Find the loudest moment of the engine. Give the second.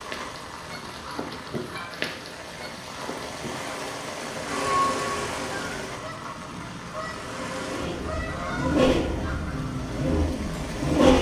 11 s.